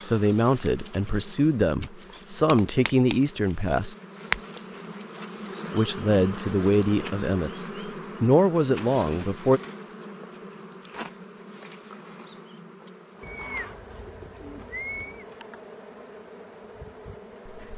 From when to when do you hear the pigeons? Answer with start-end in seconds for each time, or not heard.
13.2-15.2.